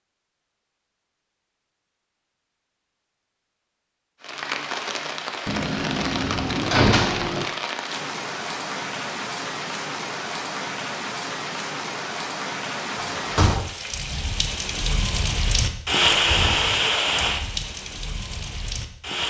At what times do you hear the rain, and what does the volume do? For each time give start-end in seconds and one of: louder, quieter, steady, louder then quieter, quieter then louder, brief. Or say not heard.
4.2-19.2 louder.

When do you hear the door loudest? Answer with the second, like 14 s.
7 s.